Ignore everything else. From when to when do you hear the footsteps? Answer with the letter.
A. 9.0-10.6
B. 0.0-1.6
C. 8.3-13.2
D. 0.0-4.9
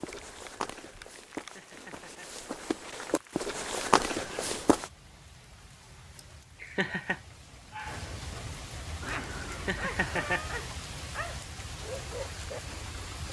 D.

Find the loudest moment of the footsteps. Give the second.
4 s.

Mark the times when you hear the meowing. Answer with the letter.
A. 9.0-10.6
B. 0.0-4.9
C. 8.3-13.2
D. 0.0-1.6
A.